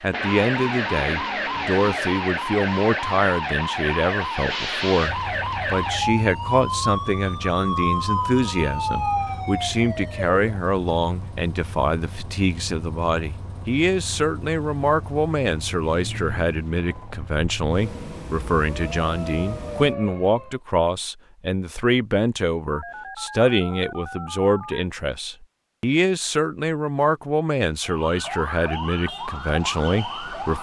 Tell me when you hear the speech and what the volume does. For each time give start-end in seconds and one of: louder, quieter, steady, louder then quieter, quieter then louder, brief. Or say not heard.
0.0-30.5 steady.